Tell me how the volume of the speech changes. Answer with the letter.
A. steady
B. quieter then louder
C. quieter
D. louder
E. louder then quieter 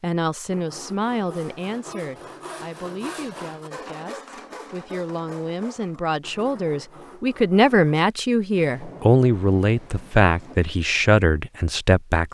B.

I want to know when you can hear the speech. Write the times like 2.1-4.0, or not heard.
0.0-12.2.